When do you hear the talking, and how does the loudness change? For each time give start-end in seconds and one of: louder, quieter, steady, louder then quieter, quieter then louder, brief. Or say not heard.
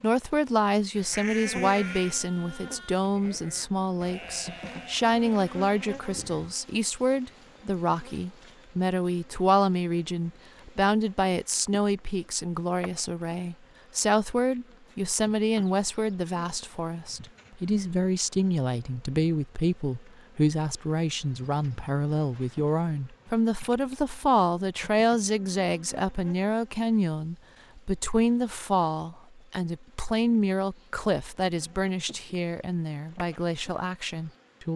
0.0-34.7 steady.